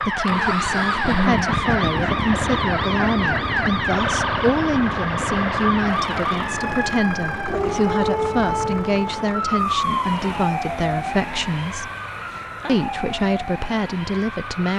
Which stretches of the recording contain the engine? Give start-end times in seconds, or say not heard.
0.0-14.6.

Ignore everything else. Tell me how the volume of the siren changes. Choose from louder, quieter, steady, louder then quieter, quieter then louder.
quieter.